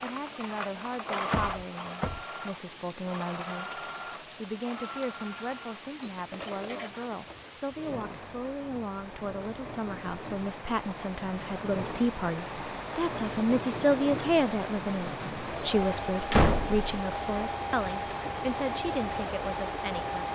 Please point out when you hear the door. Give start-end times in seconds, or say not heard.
1.3-2.2, 16.3-16.9.